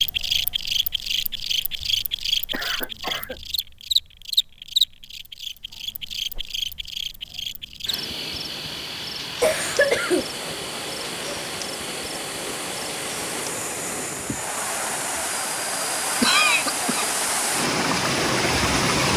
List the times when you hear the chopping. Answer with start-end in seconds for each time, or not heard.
not heard.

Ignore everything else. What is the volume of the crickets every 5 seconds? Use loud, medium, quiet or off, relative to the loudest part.
loud, medium, medium, quiet.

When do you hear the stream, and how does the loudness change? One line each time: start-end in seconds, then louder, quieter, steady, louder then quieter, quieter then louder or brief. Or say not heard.
9.4-19.1 louder.